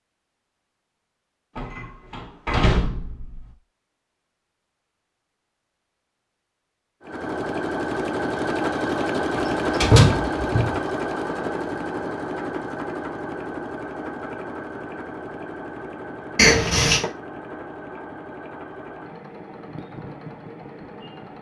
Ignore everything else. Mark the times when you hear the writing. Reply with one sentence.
You can't hear the writing here.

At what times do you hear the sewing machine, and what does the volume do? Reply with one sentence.
You can hear the sewing machine from 7.0 to 21.3 s, getting quieter.